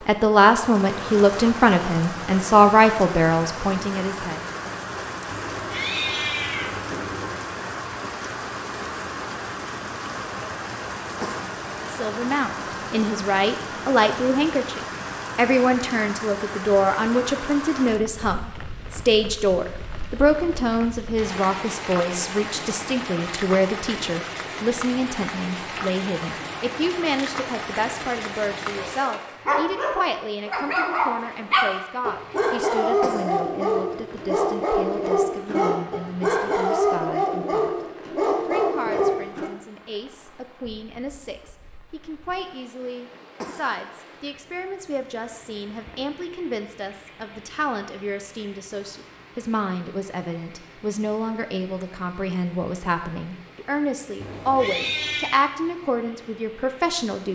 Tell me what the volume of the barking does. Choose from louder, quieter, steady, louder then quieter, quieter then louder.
steady.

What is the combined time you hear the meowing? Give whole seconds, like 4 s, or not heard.
3 s.